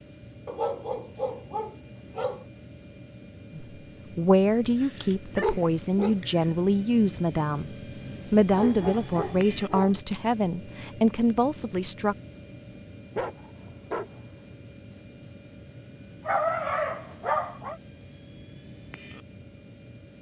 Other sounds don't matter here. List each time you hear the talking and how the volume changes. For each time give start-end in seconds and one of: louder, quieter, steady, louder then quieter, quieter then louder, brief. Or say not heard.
3.5-12.2 steady.